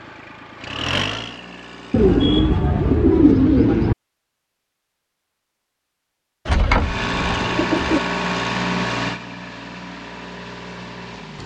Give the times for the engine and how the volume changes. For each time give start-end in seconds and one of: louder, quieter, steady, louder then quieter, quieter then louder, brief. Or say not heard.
0.0-2.4 brief
6.8-11.4 quieter.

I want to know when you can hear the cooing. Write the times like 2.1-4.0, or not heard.
1.9-4.0, 6.5-8.0.